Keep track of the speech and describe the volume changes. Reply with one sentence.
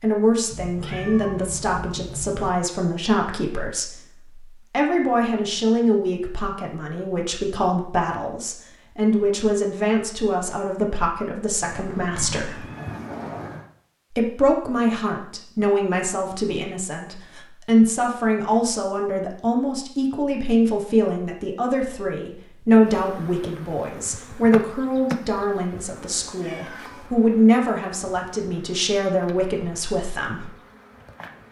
The volume of the speech stays about the same.